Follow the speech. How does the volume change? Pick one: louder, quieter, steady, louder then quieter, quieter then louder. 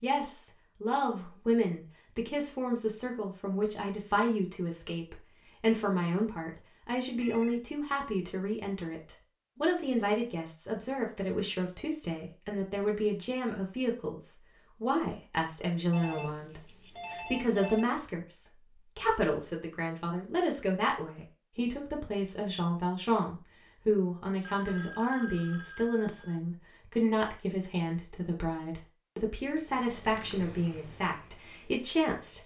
steady.